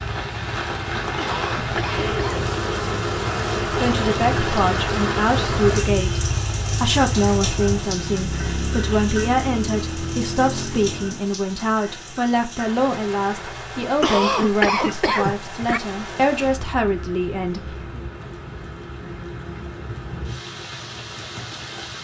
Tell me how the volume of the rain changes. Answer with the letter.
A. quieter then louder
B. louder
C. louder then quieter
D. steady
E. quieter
E.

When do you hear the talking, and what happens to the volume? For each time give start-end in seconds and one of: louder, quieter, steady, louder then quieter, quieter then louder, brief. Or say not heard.
3.7-18.0 steady.